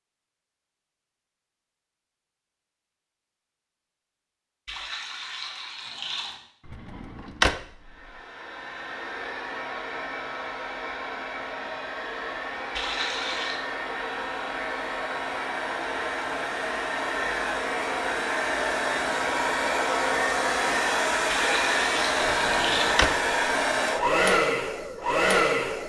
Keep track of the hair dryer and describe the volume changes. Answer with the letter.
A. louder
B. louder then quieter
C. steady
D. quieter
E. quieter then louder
A.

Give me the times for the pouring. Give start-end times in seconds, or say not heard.
4.7-6.4, 12.8-13.7, 21.2-23.0.